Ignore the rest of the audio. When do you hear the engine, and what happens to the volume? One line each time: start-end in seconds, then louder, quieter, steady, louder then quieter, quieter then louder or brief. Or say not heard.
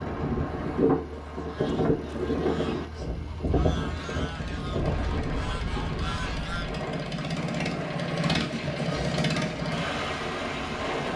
0.0-11.1 louder.